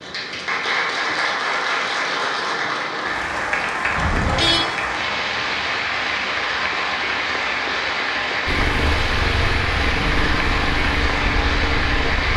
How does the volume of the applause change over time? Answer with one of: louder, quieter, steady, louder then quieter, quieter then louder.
steady.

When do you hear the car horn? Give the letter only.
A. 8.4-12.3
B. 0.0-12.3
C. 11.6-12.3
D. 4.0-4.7
D.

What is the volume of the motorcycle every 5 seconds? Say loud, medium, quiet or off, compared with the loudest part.
off, loud, loud.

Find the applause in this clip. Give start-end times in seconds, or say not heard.
0.0-12.3.